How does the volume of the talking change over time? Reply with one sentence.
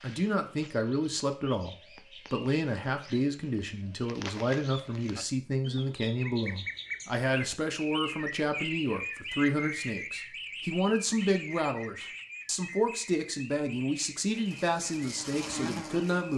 The volume of the talking stays about the same.